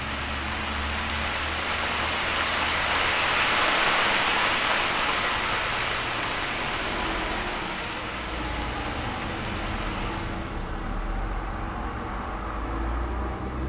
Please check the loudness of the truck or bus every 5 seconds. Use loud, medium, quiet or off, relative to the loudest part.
medium, loud, loud.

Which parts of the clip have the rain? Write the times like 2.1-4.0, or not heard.
0.0-10.6.